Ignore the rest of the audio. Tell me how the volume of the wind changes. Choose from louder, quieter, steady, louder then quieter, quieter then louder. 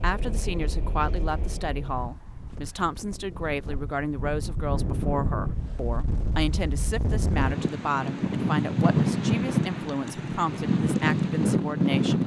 louder.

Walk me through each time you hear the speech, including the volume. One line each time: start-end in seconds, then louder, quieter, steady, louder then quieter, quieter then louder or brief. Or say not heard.
0.0-12.2 steady.